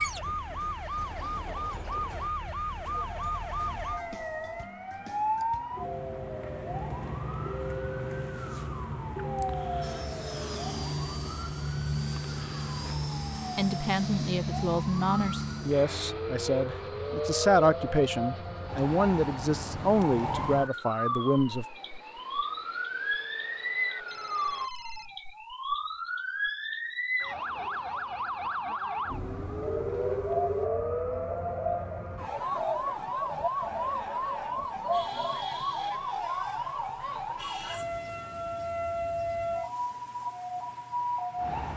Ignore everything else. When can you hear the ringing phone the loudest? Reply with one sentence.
The loudest moment of the ringing phone is at 30 seconds.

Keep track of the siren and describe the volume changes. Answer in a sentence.
The loudness of the siren stays about the same.